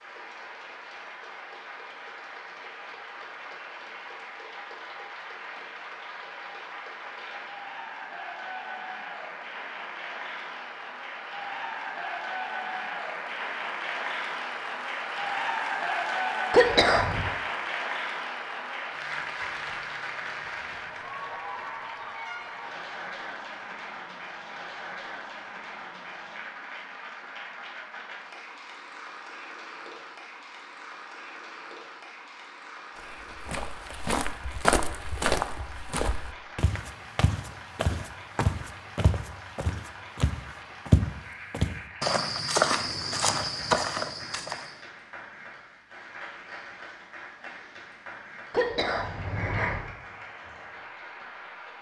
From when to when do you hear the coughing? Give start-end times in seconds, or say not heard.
16.5-17.3, 48.5-49.9.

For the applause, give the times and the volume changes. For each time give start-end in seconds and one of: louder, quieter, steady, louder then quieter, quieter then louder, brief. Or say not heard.
0.0-51.7 louder then quieter.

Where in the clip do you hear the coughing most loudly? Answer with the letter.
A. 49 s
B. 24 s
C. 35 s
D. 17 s
D.